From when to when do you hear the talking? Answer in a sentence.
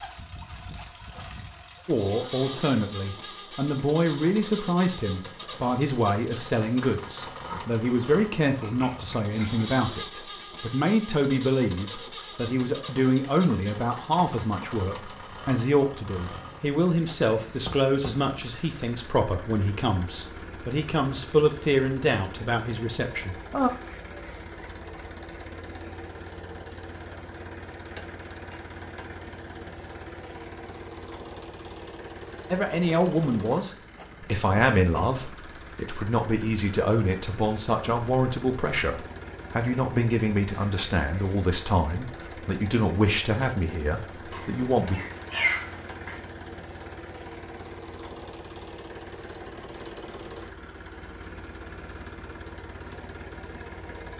The talking can be heard from 1.9 to 23.7 s and from 32.5 to 45.0 s.